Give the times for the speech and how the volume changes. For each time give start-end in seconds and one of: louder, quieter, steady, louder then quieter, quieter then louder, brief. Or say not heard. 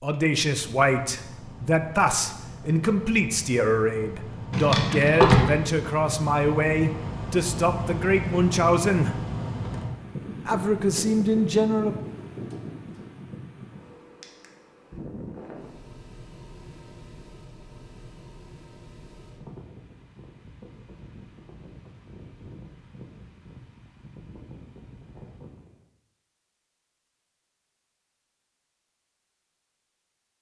0.0-9.2 steady
10.4-11.9 brief.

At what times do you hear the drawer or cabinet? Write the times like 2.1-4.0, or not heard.
4.5-5.5.